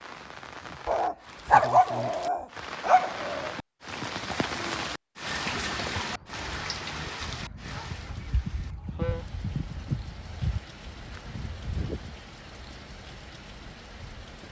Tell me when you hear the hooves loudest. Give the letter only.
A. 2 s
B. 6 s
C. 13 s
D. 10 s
D.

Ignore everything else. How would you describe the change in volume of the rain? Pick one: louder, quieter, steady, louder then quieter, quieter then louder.
louder then quieter.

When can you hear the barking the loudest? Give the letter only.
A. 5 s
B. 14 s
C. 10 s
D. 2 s
D.